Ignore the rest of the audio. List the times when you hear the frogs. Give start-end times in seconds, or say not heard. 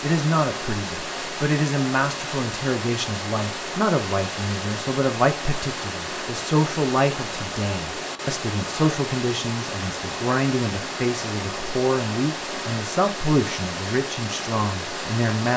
not heard.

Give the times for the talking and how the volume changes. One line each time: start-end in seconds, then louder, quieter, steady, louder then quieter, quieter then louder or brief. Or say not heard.
0.0-15.5 steady.